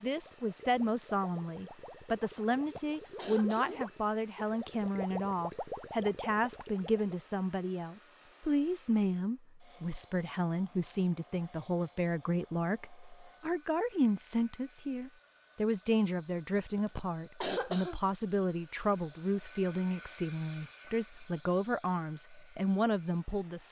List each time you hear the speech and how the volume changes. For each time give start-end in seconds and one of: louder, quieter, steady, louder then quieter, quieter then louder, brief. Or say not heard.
0.0-23.6 steady.